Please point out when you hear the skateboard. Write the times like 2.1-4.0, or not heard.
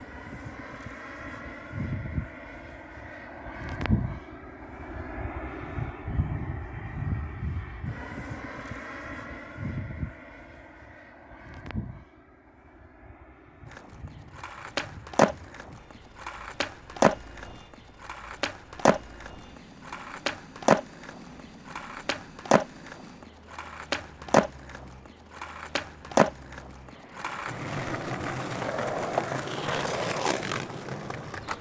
13.7-31.5.